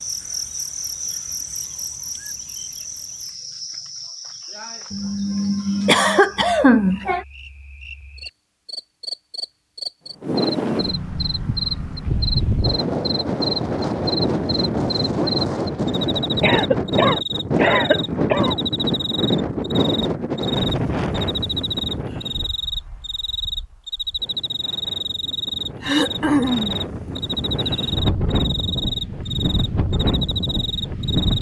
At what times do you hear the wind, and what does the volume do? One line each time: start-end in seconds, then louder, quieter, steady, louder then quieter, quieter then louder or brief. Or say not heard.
10.2-31.3 quieter then louder.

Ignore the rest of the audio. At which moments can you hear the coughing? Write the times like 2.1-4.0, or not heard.
4.9-7.2, 16.4-18.6, 25.8-26.8.